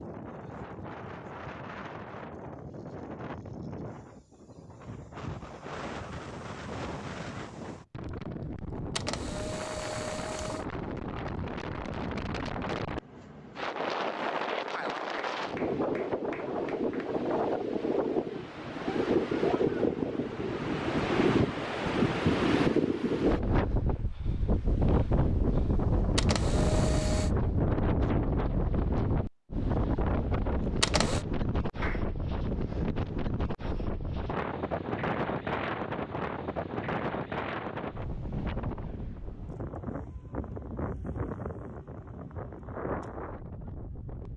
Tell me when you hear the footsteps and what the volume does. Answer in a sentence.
You can't hear the footsteps here.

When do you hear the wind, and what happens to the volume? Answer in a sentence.
You can hear the wind from 0.0 to 44.3 s, getting louder then quieter.